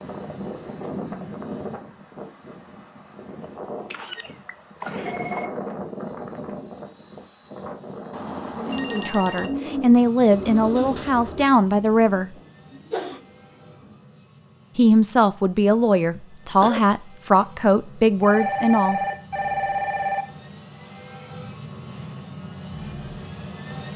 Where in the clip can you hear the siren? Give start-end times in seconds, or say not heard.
not heard.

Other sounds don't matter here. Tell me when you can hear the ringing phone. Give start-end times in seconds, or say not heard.
4.8-5.5, 8.1-9.5, 18.2-20.2.